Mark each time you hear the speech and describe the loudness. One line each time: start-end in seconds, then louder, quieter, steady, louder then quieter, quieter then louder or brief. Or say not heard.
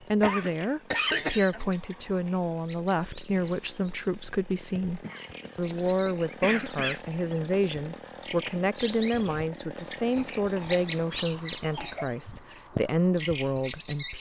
0.1-14.1 steady.